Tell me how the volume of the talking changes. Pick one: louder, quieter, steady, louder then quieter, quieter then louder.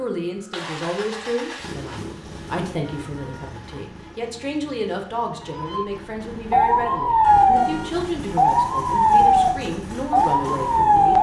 steady.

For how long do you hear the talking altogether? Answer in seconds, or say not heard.
11 s.